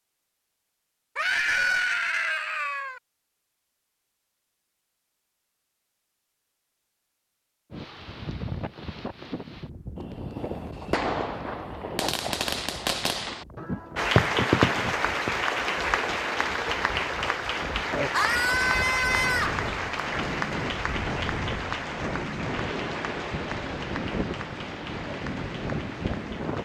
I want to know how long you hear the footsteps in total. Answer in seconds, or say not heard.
not heard.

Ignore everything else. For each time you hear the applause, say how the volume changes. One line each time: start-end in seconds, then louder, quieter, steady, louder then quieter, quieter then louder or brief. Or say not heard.
13.9-26.6 quieter.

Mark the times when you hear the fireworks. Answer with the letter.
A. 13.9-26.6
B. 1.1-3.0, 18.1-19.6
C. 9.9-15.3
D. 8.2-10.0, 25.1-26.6
C.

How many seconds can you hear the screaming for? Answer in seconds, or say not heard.
3 s.